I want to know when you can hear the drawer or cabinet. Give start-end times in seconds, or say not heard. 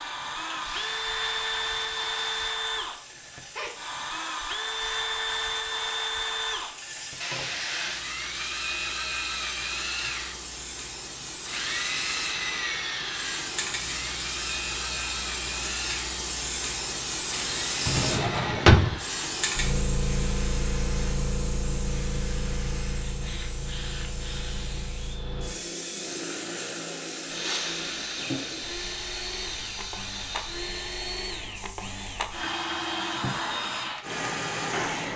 17.9-19.0.